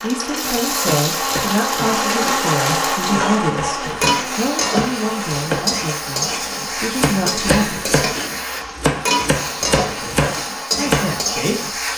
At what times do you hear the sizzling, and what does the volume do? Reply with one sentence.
You can hear the sizzling from 0.0 to 11.9 s, at a steady volume.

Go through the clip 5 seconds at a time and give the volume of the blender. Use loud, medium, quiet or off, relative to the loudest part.
loud, medium, medium.